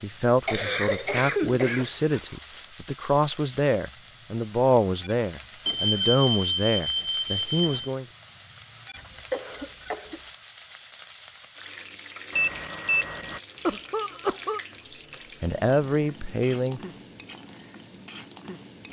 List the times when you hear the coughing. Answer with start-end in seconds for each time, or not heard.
0.5-2.4, 8.9-10.2, 13.7-14.6.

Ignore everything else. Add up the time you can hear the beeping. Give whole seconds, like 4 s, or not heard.
3 s.